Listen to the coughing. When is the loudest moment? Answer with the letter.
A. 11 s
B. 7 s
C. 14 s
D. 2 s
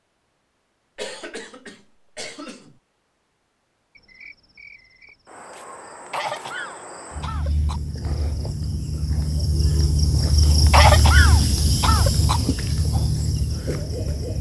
A.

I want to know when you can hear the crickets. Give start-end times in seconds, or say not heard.
4.0-14.3.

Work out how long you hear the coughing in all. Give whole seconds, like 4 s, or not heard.
5 s.